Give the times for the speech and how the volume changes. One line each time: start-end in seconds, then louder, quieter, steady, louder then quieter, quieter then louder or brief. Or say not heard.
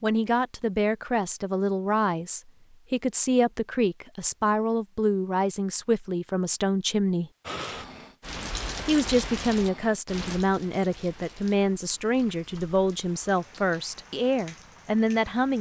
0.0-7.3 steady
8.8-15.5 steady.